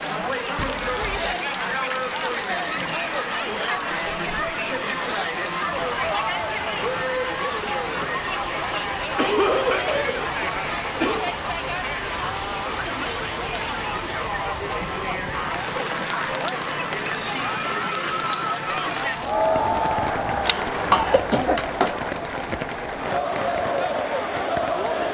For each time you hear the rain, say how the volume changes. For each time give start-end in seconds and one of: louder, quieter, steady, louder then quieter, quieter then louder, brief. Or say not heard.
0.0-25.0 steady.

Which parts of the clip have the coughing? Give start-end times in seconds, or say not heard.
0.6-1.4, 9.2-11.3, 20.4-22.0.